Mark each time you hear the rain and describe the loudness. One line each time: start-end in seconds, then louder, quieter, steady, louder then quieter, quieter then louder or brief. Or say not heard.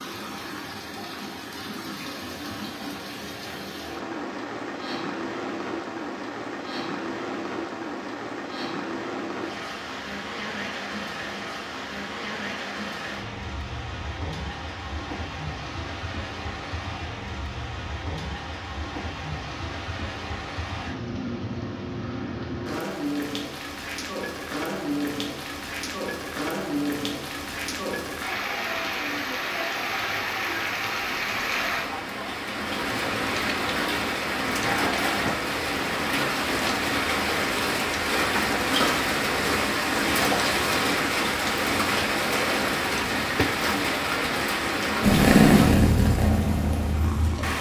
0.0-47.5 louder.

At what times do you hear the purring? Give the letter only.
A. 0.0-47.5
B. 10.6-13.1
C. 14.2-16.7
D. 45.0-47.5
D.